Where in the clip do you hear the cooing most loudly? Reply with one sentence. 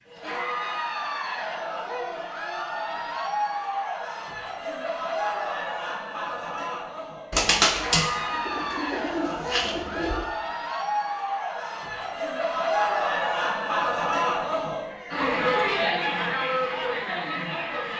The volume of the cooing peaks at 8 seconds.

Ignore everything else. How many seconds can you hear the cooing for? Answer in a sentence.
The cooing can be heard for 3 seconds in total.